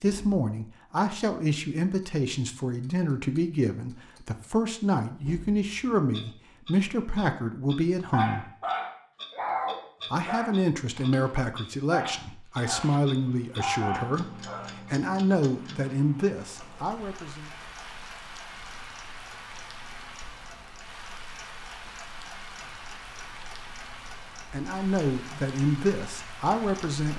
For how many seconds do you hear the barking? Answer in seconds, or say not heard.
7 s.